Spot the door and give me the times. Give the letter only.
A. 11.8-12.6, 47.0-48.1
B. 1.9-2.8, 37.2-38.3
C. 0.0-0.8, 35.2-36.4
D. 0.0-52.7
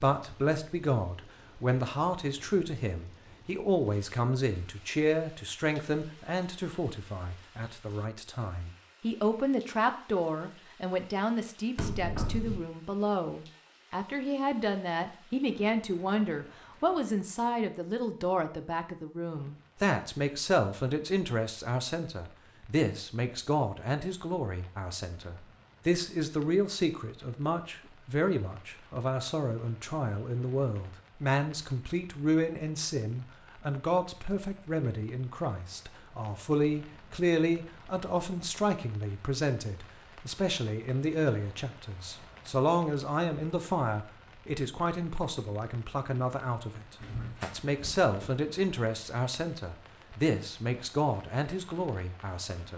A.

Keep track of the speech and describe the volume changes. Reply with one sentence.
The loudness of the speech stays about the same.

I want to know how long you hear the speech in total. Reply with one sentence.
The speech can be heard for 53 seconds in total.